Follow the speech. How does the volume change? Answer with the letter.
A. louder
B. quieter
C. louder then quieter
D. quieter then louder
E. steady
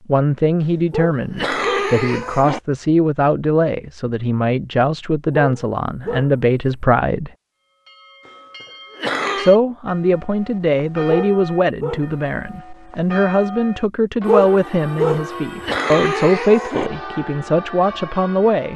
E.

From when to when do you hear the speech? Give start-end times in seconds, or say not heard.
0.1-7.3, 9.3-18.7.